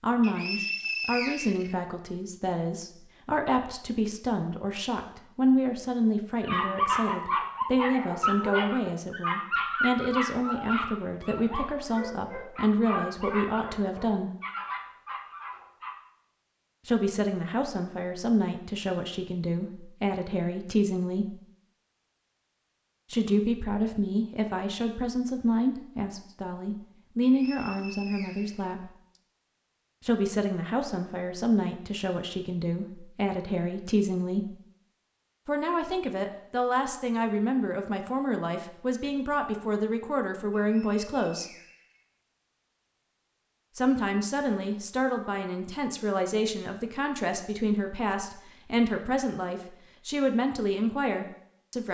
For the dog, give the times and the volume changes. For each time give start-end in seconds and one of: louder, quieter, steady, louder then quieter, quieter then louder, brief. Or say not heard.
6.4-15.9 quieter.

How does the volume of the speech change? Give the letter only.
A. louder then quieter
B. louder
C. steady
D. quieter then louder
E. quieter
C.